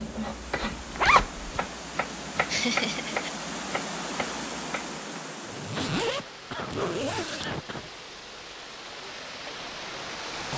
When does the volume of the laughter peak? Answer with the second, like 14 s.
3 s.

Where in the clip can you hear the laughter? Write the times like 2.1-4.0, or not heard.
2.5-3.3, 5.8-7.9.